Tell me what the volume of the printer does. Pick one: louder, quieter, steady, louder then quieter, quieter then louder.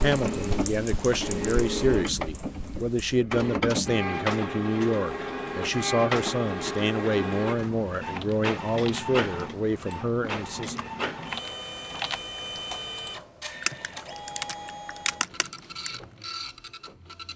quieter.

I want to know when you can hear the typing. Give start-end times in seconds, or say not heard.
0.0-3.2, 8.0-16.0.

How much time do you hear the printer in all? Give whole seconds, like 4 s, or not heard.
17 s.